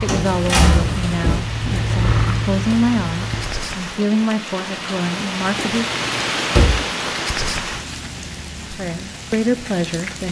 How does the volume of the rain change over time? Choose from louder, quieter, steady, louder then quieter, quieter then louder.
louder then quieter.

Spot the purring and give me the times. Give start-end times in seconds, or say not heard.
0.0-3.7.